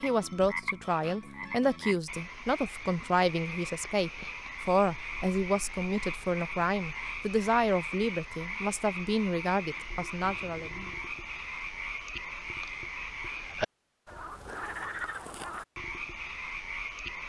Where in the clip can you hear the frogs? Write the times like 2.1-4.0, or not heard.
0.0-17.2.